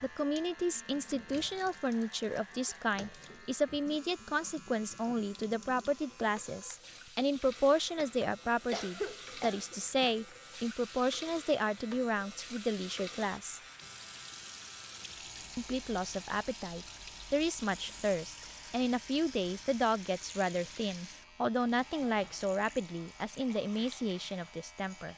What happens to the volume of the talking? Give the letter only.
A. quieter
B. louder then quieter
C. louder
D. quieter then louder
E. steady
E.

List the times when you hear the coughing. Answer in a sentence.
The coughing can be heard from 8.0 to 10.2 s.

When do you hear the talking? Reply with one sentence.
You can hear the talking from 0.0 to 13.6 s and from 15.6 to 25.1 s.